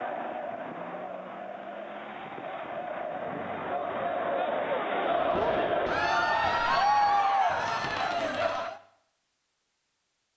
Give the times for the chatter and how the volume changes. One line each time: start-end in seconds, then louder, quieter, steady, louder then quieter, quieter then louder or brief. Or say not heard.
0.0-8.8 louder.